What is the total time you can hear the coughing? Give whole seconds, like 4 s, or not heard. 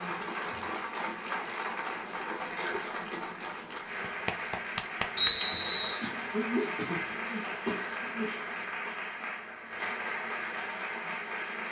3 s.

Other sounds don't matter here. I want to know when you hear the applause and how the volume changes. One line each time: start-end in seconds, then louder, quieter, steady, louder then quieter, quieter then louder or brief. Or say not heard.
0.0-11.6 steady.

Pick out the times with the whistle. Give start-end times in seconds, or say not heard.
5.2-6.0.